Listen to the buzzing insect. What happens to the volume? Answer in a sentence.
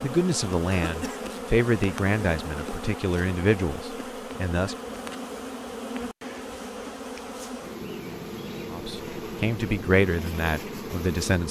The volume of the buzzing insect stays about the same.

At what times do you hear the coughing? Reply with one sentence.
You can hear the coughing from 0.7 to 1.3 s.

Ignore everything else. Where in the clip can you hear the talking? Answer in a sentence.
You can hear the talking from 0.0 to 4.8 s and from 8.7 to 11.4 s.